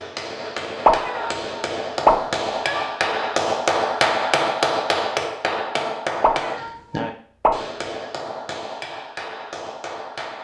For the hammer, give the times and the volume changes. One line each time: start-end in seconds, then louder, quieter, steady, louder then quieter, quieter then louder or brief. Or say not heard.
0.0-10.3 louder then quieter.